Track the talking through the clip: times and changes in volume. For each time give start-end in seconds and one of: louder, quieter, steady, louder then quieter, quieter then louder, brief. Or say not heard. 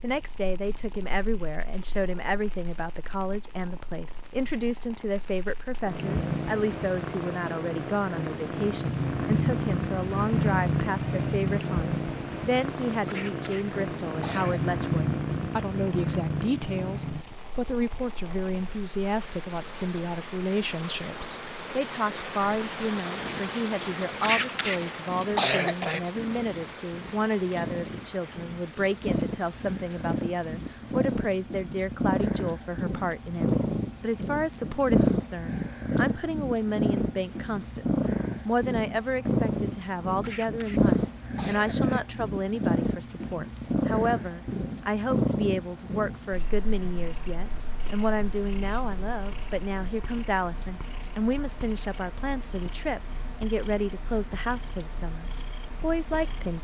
0.0-56.5 steady.